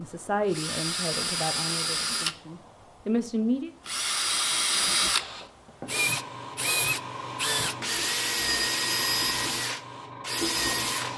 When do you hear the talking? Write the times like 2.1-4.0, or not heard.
0.0-3.7.